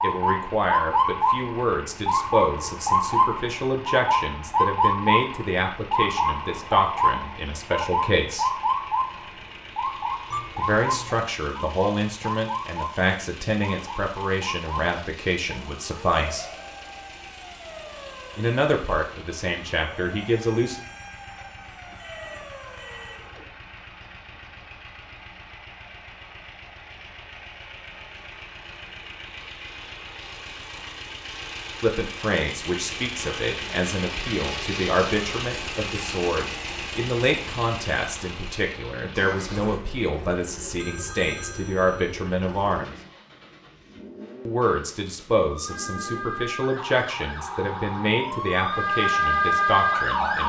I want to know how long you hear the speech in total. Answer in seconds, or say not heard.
34 s.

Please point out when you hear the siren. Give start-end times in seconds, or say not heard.
0.0-23.5, 45.5-50.4.